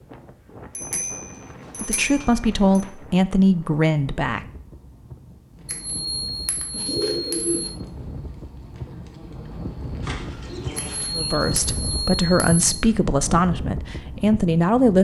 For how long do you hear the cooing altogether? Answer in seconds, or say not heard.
4 s.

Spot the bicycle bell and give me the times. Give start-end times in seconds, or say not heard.
0.8-2.9, 5.7-7.7, 10.8-12.8.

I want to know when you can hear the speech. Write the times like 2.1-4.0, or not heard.
1.8-4.5, 11.2-14.9.